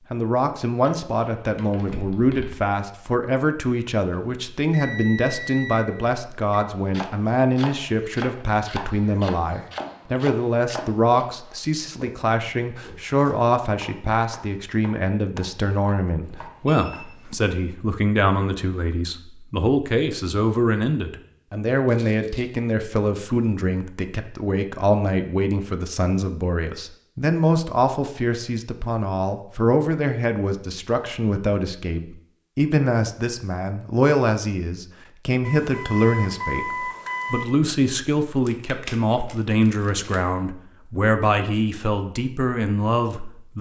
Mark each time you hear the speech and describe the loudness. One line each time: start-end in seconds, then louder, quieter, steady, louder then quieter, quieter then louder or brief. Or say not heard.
0.1-43.5 steady.